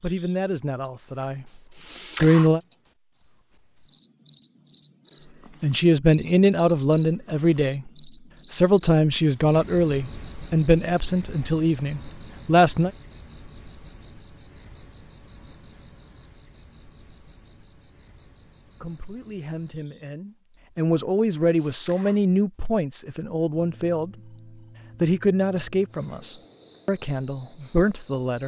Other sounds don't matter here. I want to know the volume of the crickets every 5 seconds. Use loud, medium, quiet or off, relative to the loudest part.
medium, loud, quiet, quiet, quiet, quiet.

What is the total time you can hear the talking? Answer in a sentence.
You can hear the talking for 18 seconds altogether.